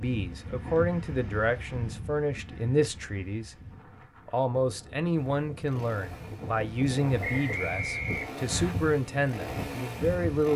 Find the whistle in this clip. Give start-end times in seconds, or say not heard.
7.2-8.8.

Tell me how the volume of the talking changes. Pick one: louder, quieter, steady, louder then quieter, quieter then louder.
steady.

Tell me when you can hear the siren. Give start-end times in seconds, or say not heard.
not heard.